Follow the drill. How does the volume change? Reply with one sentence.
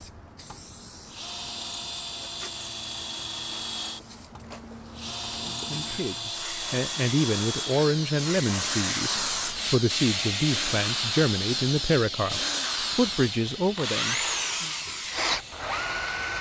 The volume of the drill goes up.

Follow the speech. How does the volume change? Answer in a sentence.
The loudness of the speech stays about the same.